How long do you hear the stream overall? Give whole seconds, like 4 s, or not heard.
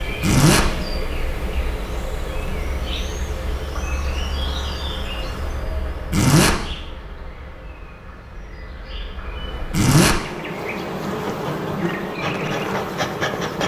not heard.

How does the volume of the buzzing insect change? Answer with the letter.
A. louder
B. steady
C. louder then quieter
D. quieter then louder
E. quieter
D.